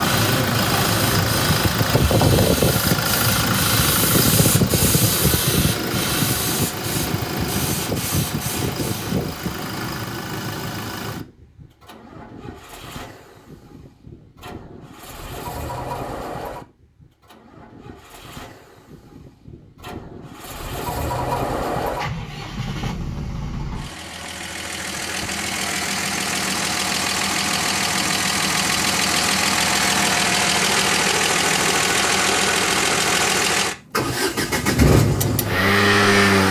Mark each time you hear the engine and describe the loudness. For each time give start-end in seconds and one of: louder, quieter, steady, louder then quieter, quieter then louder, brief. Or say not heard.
0.0-36.4 quieter then louder.